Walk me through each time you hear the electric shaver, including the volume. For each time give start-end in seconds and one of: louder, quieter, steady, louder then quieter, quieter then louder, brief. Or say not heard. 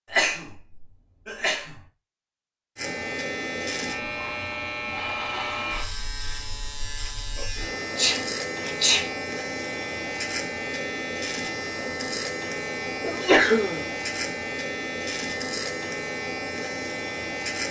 2.8-17.6 steady.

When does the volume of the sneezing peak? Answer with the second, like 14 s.
13 s.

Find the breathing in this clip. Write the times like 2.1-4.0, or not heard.
not heard.